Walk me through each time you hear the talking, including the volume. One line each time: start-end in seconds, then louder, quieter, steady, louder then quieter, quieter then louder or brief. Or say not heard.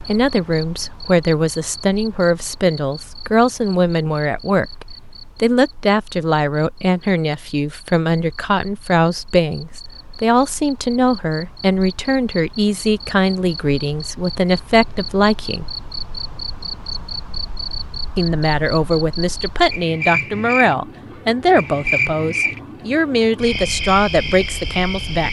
0.1-15.8 steady
18.1-25.2 steady.